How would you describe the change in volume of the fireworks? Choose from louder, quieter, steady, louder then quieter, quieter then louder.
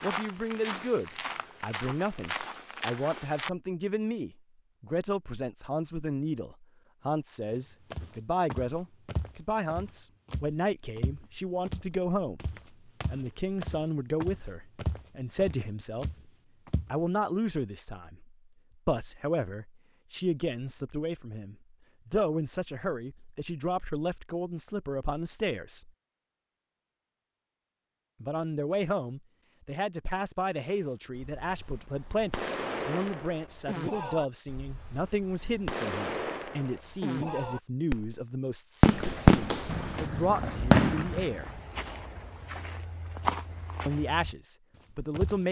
louder.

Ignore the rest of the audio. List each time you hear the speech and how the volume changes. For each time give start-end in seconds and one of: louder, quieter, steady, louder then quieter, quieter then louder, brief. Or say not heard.
0.0-16.1 steady
16.9-25.9 steady
28.2-41.6 steady
43.9-45.4 brief.